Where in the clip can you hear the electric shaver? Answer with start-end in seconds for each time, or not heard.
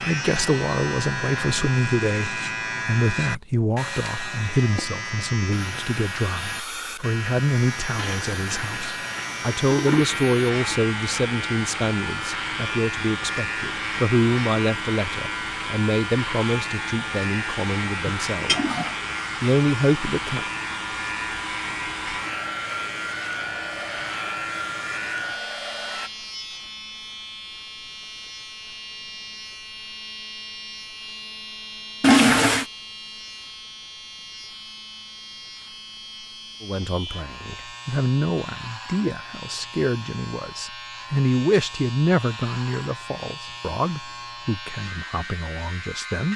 0.0-46.3.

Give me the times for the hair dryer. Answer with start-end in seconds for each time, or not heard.
3.8-26.1.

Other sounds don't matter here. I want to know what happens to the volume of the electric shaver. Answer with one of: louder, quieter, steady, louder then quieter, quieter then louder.
quieter.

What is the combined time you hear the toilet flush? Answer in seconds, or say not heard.
4 s.